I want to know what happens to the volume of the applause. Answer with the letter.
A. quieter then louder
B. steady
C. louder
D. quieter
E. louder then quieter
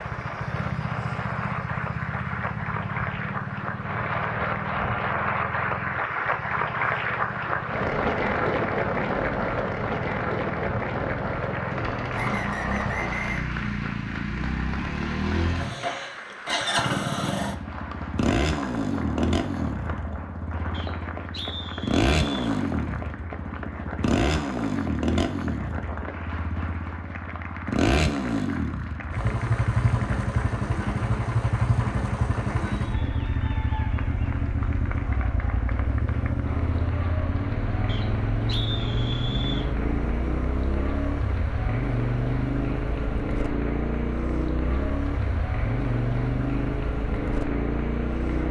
D.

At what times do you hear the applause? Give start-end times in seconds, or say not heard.
0.0-48.4.